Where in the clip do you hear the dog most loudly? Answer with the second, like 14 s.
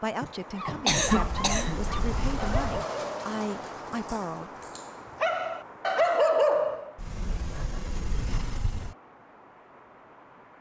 6 s.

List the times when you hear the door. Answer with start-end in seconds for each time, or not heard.
1.0-2.9, 7.0-8.9.